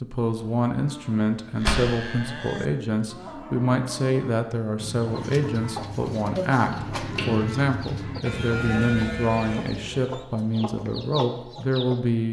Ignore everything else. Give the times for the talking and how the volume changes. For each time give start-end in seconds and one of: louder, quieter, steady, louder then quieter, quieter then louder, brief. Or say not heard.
0.0-12.2 steady.